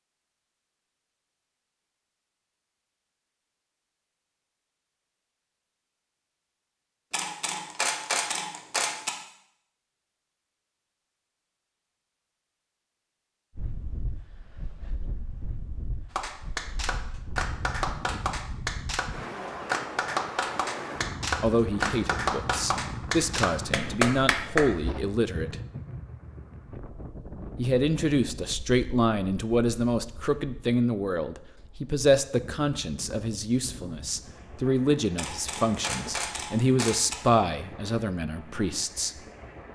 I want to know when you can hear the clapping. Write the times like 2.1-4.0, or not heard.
16.1-25.0.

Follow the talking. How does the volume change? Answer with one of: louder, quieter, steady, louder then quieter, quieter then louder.
steady.